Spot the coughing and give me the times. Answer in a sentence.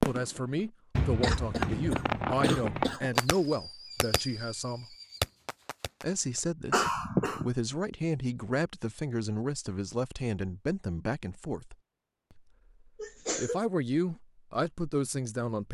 The coughing can be heard from 1.2 to 3.2 s, from 6.7 to 7.5 s and from 12.9 to 13.6 s.